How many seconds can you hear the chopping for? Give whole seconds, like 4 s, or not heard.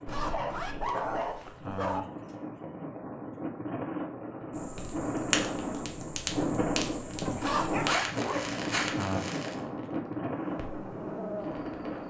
not heard.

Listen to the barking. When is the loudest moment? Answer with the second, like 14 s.
1 s.